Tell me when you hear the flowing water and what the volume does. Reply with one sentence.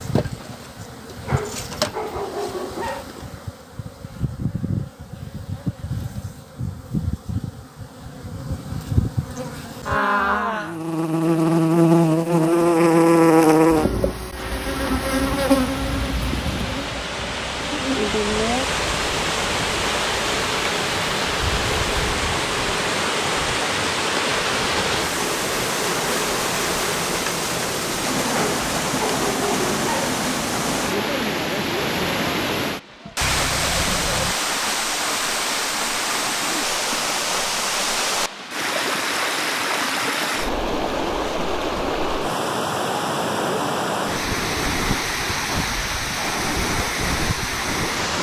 You can hear the flowing water from 14.3 to 48.1 s, at a steady volume.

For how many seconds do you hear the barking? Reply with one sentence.
The barking can be heard for 4 seconds in total.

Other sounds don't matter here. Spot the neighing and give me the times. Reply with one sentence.
The neighing can be heard from 33.2 to 34.4 s.